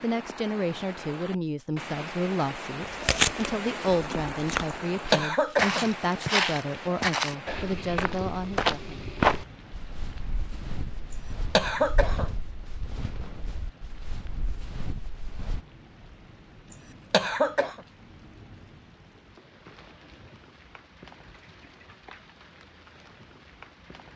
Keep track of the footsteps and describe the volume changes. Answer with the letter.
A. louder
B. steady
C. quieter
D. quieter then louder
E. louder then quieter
C.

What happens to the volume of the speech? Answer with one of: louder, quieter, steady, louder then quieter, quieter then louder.
steady.